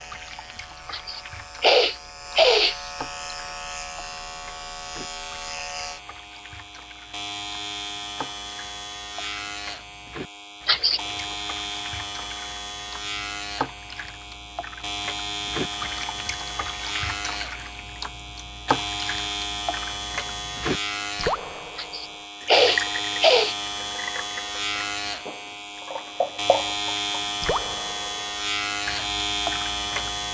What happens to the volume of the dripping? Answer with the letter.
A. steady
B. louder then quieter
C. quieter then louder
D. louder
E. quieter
D.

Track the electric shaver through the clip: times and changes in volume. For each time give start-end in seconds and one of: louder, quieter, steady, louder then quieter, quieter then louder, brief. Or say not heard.
0.0-30.2 louder.